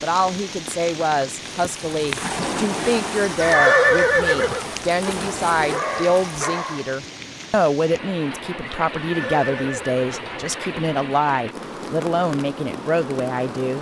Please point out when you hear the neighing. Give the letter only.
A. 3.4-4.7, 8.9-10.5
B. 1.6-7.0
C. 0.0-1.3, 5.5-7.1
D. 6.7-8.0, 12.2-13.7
A.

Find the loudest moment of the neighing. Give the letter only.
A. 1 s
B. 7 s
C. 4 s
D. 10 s
C.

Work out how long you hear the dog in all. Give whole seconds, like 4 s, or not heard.
5 s.